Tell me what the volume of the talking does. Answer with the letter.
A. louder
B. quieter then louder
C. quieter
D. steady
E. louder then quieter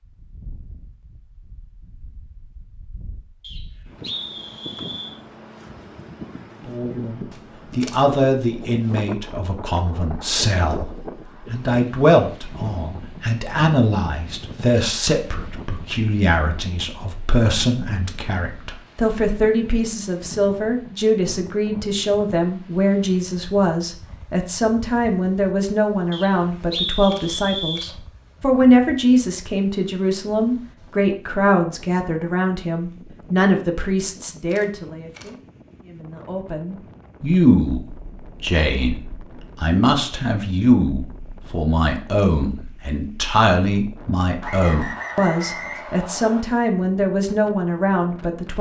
D.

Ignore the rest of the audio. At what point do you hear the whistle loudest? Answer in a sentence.
The loudest moment of the whistle is at 27 seconds.